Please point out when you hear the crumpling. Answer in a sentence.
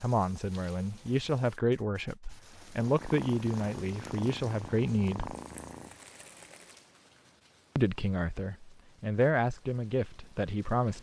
You can hear the crumpling from 5.3 to 6.8 s.